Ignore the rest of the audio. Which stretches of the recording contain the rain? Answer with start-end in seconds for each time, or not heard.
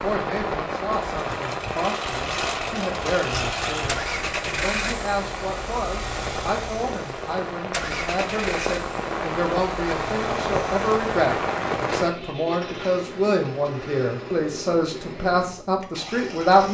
0.0-12.1.